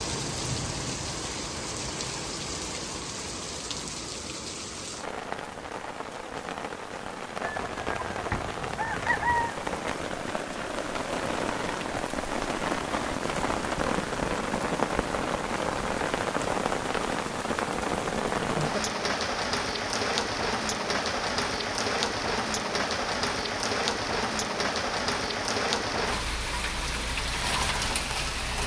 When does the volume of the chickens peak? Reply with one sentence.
The volume of the chickens peaks at 9 seconds.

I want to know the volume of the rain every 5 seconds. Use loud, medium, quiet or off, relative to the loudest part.
medium, medium, loud, loud, loud, loud.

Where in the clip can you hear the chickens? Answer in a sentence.
The chickens can be heard from 7.4 to 9.6 s.